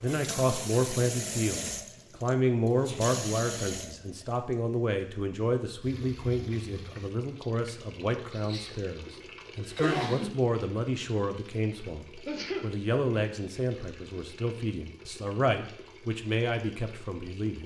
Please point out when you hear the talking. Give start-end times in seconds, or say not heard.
0.0-17.6.